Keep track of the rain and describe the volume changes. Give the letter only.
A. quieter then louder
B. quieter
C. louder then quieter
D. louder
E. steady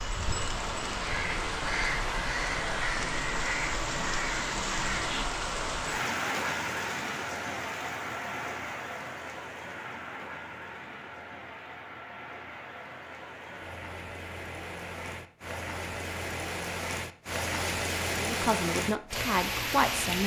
A.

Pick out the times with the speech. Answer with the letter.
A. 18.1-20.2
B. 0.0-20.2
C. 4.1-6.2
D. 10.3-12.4
A.